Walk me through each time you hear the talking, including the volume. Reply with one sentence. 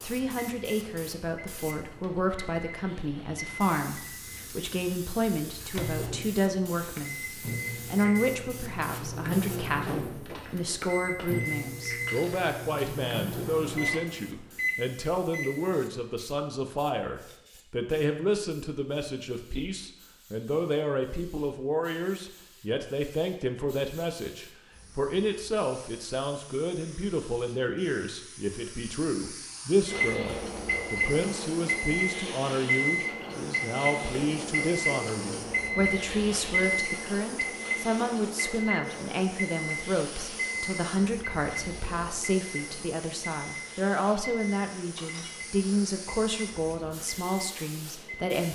The talking can be heard from 0.0 to 48.4 s, at a steady volume.